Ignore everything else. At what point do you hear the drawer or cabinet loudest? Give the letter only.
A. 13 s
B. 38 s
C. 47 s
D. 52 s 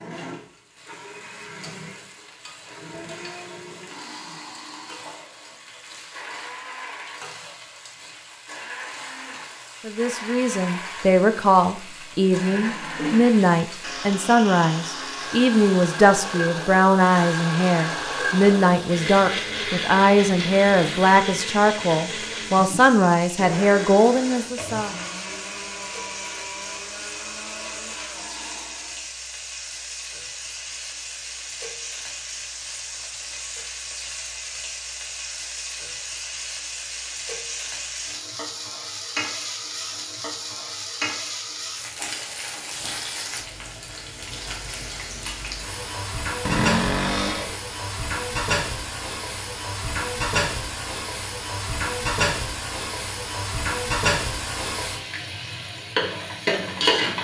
C.